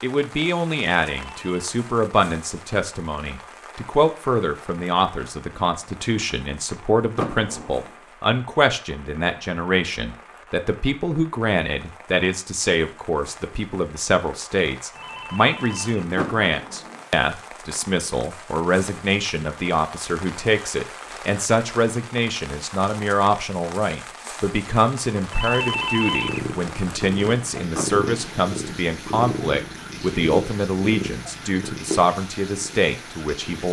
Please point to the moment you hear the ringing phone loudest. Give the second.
26 s.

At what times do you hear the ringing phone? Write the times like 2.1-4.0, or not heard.
1.1-1.6, 14.9-16.1, 25.3-26.4.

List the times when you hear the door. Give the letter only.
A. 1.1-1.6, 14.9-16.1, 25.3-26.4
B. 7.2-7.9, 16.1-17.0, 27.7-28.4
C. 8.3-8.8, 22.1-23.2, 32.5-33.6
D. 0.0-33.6
B.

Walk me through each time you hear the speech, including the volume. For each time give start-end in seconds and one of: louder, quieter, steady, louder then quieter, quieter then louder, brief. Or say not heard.
0.0-33.6 steady.